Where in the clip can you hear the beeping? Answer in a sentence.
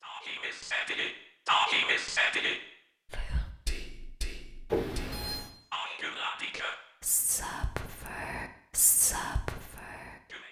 The beeping can be heard from 4.7 to 5.5 s.